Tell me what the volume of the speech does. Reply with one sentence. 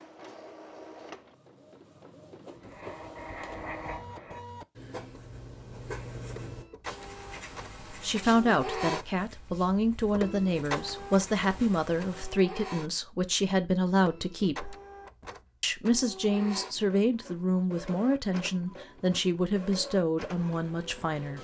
The volume of the speech stays about the same.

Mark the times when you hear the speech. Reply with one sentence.
You can hear the speech from 7.9 to 14.8 s and from 15.6 to 21.3 s.